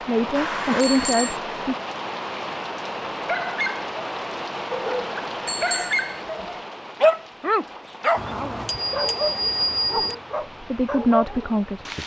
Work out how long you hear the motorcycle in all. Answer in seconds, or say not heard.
not heard.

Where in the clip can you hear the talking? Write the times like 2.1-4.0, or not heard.
0.1-1.8, 10.6-12.0.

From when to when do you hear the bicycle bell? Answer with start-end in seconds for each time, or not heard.
0.3-1.4, 5.5-6.5, 8.2-10.2.